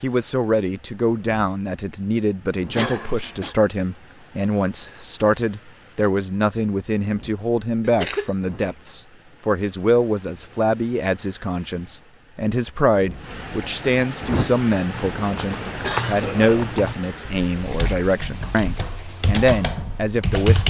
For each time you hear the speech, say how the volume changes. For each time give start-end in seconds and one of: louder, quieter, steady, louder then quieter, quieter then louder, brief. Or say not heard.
0.0-20.6 steady.